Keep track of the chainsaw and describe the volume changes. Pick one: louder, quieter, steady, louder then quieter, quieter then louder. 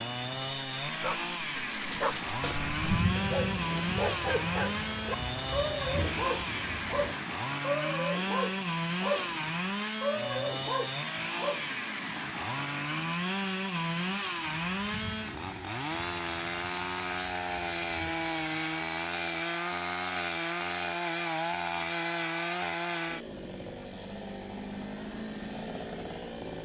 steady.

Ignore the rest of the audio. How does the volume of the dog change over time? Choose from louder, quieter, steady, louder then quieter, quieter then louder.
steady.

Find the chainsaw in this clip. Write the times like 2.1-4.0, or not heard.
0.0-26.6.